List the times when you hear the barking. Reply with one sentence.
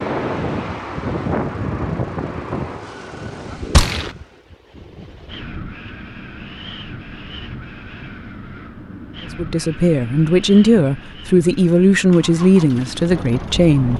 You can't hear the barking here.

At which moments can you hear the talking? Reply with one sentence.
You can hear the talking from 9.3 to 13.9 s.